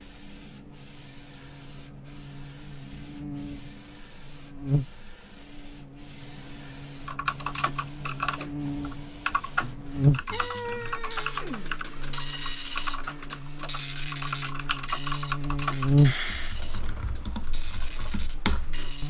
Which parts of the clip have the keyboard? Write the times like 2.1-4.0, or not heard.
7.0-18.9.